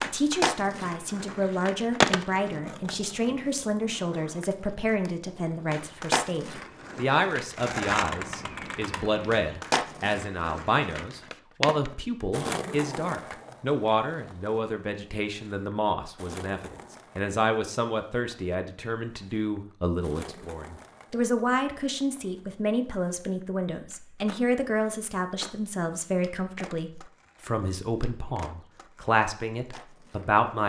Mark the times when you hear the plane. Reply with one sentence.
You can't hear the plane here.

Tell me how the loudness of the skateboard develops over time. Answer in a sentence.
The volume of the skateboard goes down.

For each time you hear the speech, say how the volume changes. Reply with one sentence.
The speech can be heard from 0.0 to 30.6 s, at a steady volume.